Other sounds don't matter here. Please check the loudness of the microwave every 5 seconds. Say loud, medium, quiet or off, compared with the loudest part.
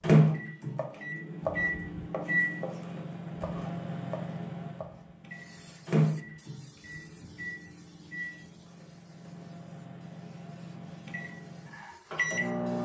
loud, medium, medium.